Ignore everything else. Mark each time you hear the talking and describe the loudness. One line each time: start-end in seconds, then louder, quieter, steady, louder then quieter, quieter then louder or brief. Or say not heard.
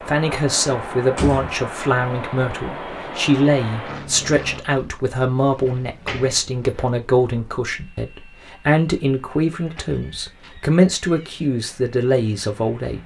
0.1-13.0 steady.